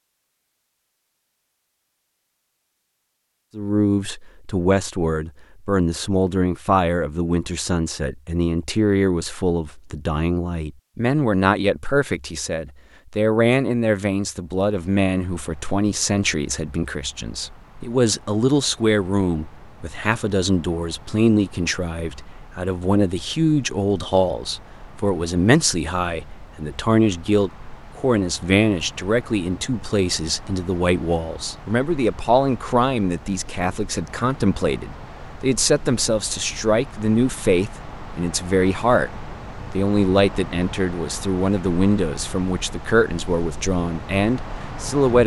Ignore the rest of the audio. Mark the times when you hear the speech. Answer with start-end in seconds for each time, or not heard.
3.5-45.2.